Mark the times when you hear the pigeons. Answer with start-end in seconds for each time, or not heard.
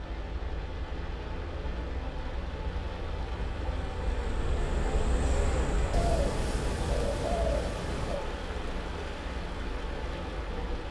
5.9-8.2.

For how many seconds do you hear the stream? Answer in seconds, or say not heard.
11 s.